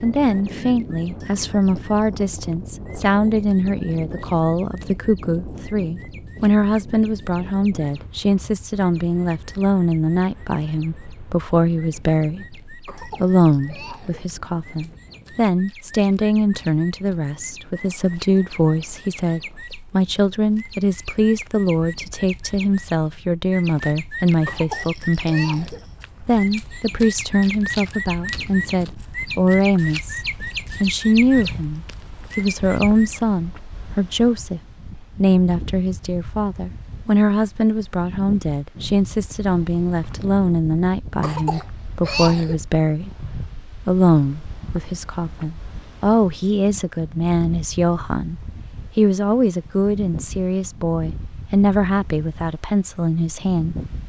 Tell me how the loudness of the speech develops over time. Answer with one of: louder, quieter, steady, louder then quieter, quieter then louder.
steady.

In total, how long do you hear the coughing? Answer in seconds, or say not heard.
4 s.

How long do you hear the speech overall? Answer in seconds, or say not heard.
54 s.